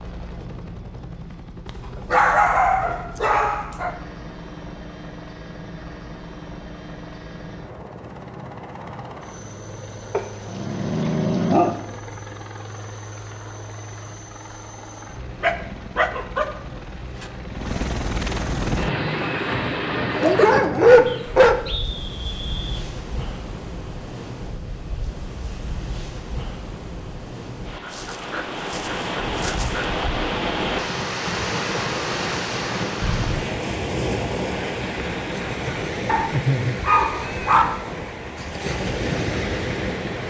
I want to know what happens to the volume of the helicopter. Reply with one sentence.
The loudness of the helicopter goes up.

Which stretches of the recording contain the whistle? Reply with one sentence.
You can hear the whistle from 21.1 to 22.8 s.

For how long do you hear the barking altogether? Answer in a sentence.
The barking can be heard for 10 seconds in total.